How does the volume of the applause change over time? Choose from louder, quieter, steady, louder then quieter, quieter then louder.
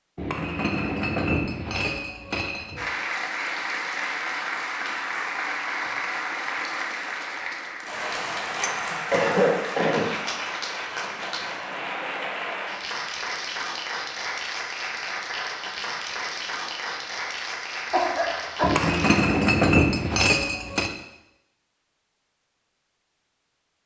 steady.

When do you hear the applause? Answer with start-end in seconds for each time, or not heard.
2.8-19.2.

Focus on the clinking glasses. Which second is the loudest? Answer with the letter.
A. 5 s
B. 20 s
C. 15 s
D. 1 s
B.